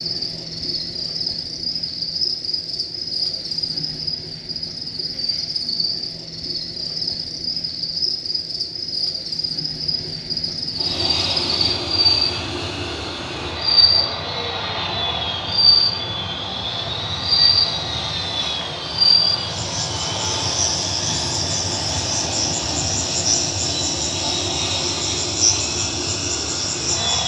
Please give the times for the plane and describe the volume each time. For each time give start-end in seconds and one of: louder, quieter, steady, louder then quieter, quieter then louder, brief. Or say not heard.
10.7-27.2 steady.